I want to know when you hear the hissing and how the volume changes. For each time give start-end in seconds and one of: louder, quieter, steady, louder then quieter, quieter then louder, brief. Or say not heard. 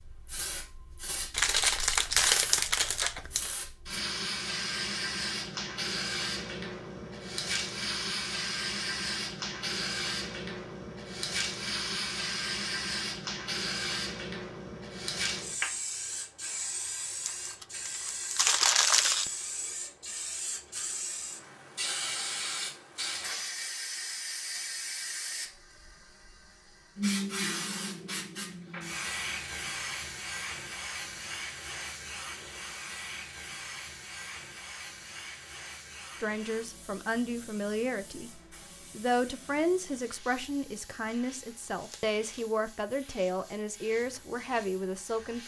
0.0-45.4 quieter.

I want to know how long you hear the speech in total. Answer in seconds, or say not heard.
9 s.